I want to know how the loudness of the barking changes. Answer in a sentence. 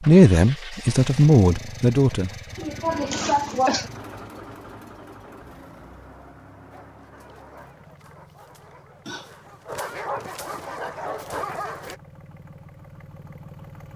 The volume of the barking goes up.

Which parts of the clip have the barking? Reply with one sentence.
You can hear the barking from 6.7 to 12.0 s.